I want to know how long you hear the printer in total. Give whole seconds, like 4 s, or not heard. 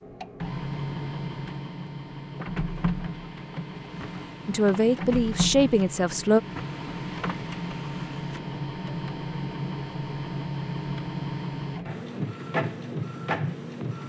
14 s.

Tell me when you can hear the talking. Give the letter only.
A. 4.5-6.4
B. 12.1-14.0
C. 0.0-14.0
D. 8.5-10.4
A.